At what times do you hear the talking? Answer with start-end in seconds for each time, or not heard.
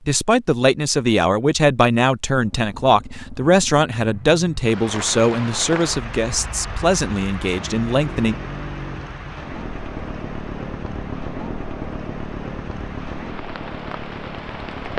0.1-8.3.